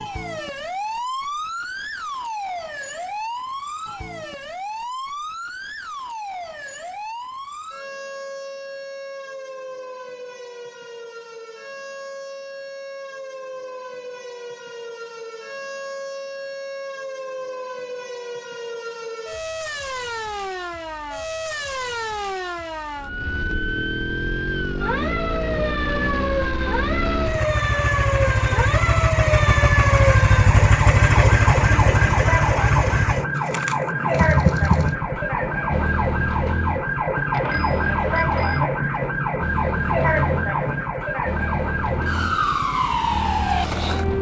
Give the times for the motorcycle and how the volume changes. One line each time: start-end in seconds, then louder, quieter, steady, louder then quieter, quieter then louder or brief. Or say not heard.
23.0-44.1 louder then quieter.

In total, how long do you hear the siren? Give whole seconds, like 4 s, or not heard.
44 s.